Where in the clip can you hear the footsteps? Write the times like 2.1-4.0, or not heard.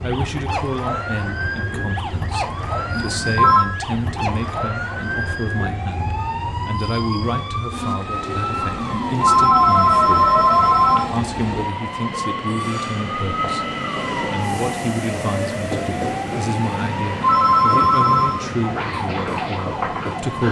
not heard.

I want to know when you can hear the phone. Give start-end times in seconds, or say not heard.
2.9-3.6, 8.8-11.1, 17.0-18.4.